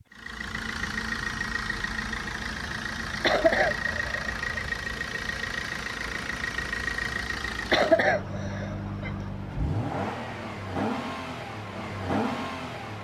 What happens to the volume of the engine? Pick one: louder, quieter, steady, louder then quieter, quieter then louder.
steady.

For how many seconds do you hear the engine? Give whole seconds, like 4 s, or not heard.
13 s.